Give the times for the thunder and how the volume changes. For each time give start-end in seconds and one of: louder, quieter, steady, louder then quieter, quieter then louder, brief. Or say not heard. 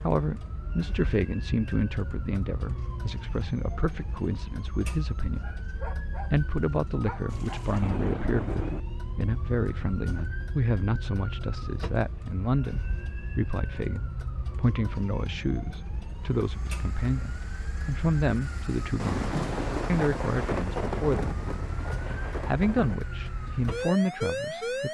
7.2-8.8 brief
18.9-22.9 quieter.